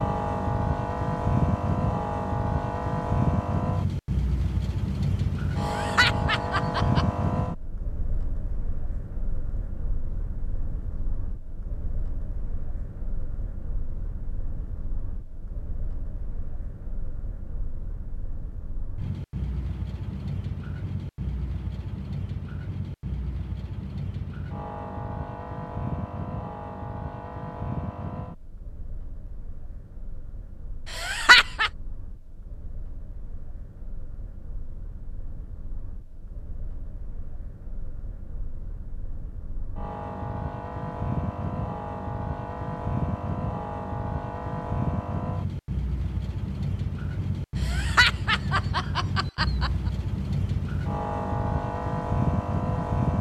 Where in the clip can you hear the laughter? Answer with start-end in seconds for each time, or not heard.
5.6-7.0, 30.9-31.7, 47.6-49.7.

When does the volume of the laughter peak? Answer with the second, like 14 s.
31 s.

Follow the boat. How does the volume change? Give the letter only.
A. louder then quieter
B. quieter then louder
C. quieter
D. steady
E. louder
B.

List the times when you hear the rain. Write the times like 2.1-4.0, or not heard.
not heard.